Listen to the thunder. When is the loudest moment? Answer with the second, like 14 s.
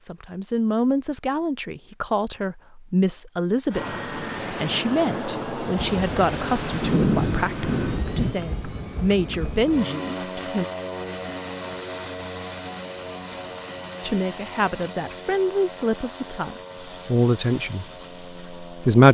7 s.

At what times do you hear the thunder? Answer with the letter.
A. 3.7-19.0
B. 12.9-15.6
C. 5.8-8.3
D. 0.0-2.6
C.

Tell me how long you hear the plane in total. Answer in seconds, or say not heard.
15 s.